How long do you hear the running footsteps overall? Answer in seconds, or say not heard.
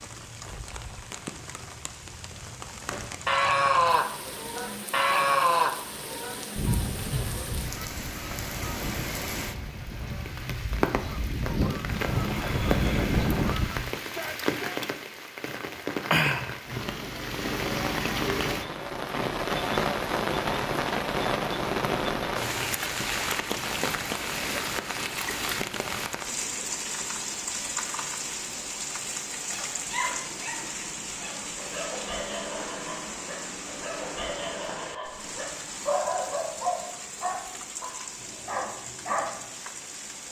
not heard.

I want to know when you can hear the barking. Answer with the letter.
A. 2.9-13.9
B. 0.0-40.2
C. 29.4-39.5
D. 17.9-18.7
C.